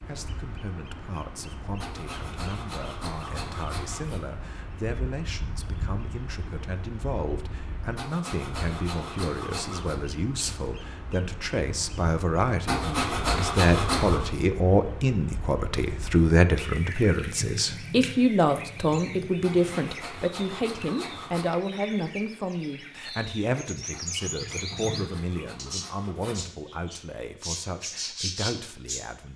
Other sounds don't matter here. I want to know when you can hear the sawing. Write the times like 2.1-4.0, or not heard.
1.8-4.2, 8.0-10.0, 12.7-14.3, 19.4-21.4, 23.9-26.4.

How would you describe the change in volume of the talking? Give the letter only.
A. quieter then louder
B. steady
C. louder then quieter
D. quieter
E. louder
C.